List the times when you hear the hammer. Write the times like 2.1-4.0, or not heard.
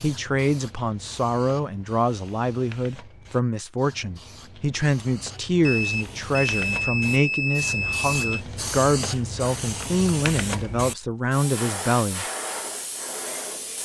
not heard.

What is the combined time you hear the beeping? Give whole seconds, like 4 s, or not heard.
3 s.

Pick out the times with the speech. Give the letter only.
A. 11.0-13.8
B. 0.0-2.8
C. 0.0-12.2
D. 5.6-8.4
C.